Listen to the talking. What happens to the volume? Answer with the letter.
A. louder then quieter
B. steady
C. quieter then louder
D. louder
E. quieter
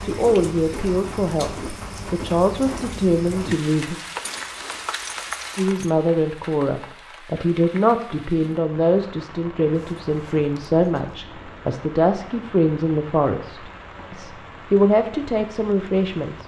B.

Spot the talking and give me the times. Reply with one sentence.
You can hear the talking from 0.0 to 4.0 s and from 5.5 to 16.4 s.